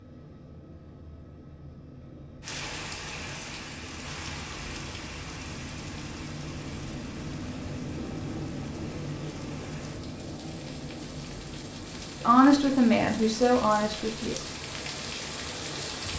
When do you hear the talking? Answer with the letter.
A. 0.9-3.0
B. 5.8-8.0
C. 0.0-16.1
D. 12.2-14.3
D.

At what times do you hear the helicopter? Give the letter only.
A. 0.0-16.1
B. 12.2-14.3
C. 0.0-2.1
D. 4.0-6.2
A.